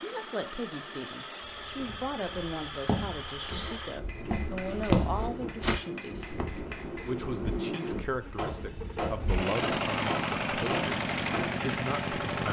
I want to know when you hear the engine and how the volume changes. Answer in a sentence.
You can hear the engine from 0.0 to 12.4 s, getting quieter then louder.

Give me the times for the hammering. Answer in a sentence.
The hammering can be heard from 3.8 to 11.7 s.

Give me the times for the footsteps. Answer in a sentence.
You can hear the footsteps from 1.4 to 6.7 s.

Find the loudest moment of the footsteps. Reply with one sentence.
The loudest moment of the footsteps is at 5 seconds.